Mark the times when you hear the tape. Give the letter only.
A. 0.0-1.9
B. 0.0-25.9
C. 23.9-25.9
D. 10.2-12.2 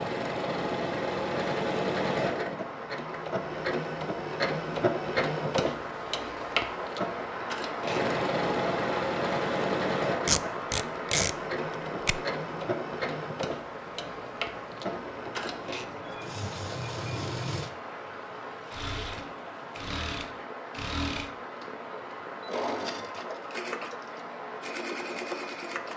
D.